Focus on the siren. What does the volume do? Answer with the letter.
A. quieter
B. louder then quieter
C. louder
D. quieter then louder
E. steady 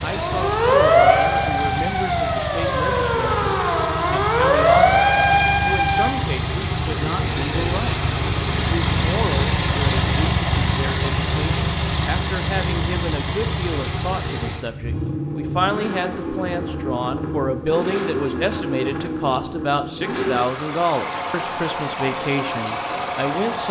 D.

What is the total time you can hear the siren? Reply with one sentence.
You can hear the siren for 6 seconds altogether.